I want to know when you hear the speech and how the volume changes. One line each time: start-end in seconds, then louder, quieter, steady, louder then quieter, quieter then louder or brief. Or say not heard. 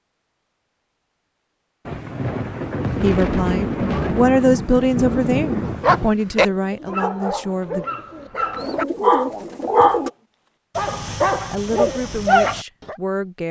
3.0-7.8 louder then quieter
11.1-13.4 brief.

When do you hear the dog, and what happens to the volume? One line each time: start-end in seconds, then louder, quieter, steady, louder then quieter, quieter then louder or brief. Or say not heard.
5.7-10.1 quieter then louder
10.8-12.9 brief.